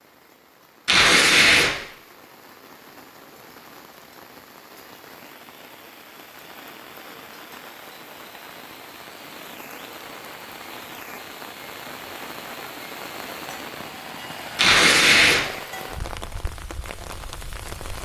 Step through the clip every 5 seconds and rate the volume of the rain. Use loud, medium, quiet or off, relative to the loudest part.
medium, medium, loud, loud.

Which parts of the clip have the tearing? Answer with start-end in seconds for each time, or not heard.
0.8-1.7, 14.6-15.4.